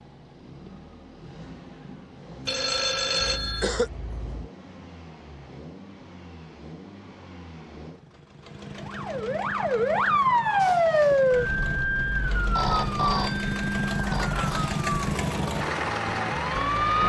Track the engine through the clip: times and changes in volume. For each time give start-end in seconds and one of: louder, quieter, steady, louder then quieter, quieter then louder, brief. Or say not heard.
0.0-17.0 louder.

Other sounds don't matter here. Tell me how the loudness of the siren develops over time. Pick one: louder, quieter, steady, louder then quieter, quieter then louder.
quieter.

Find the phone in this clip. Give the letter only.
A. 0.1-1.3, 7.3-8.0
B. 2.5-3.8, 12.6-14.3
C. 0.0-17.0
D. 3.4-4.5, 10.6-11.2
B.